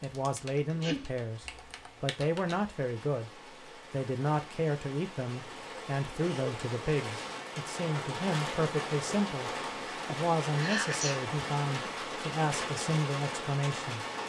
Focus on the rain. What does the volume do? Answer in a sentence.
The loudness of the rain goes up.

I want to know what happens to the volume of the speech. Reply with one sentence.
The loudness of the speech stays about the same.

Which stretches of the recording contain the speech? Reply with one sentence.
You can hear the speech from 0.0 to 3.3 s and from 3.9 to 14.1 s.